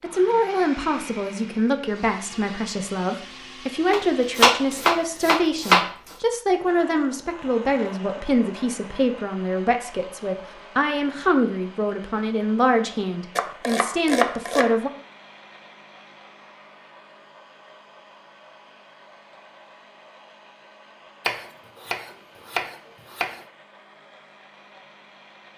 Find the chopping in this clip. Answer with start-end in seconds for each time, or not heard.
3.9-5.9, 13.3-14.8, 21.2-23.4.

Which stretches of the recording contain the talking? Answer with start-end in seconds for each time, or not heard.
0.0-14.9.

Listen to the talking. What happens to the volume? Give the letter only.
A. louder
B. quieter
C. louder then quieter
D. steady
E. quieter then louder
D.